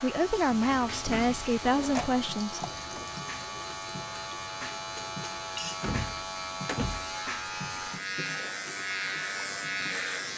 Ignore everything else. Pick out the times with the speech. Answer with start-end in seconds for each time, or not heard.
0.0-3.0.